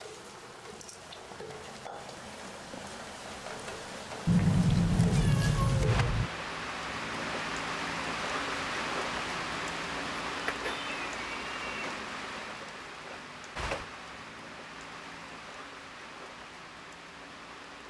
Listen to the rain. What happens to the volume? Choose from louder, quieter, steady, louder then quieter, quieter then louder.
louder then quieter.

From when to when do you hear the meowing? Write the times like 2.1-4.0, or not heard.
4.2-6.3, 10.4-11.9.